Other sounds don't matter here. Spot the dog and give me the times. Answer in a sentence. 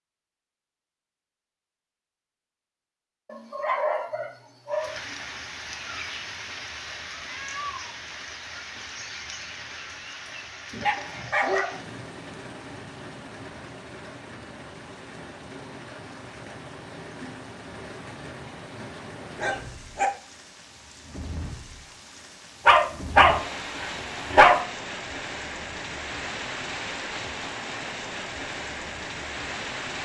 You can hear the dog from 3.2 to 5.0 s, from 10.7 to 11.8 s, from 19.4 to 20.1 s and from 22.6 to 24.6 s.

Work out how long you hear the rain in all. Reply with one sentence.
You can hear the rain for 25 seconds altogether.